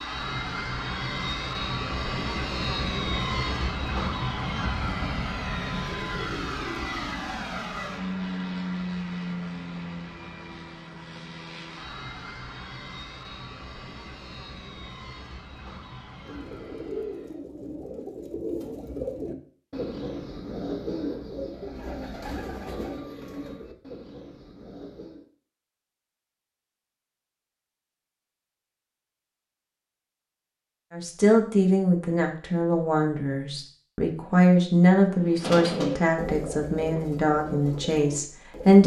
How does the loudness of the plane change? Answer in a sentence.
The loudness of the plane goes down.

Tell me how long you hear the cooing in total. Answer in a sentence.
You can hear the cooing for 13 seconds altogether.